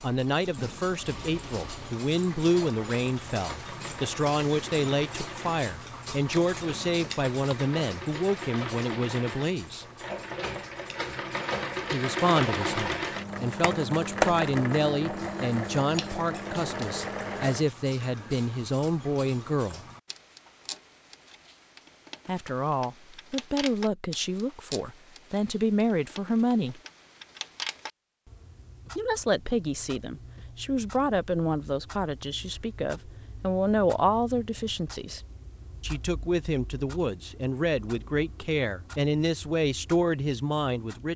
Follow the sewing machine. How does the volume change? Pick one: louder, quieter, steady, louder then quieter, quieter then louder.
louder.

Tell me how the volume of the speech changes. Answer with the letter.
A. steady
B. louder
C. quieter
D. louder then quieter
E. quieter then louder
A.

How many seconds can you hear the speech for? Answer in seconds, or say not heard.
34 s.